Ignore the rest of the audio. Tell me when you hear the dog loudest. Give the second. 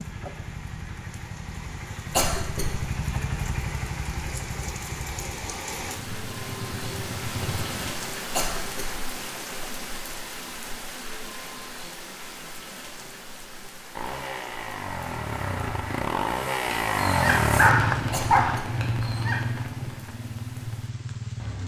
18 s.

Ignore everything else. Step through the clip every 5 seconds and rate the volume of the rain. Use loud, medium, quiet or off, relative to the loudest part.
medium, loud, medium, quiet, quiet.